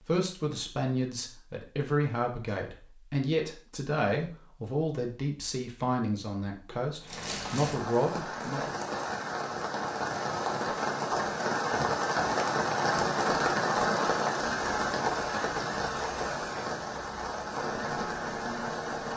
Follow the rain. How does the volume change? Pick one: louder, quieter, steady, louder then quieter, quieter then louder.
louder then quieter.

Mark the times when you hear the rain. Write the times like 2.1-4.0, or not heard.
7.0-19.1.